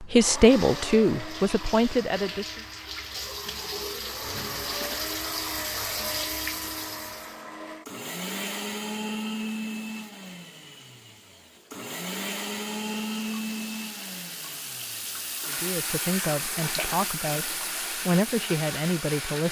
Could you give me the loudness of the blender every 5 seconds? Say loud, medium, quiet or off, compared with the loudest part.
medium, loud, loud, loud.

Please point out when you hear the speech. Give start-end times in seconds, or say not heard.
0.0-2.6, 15.4-19.4.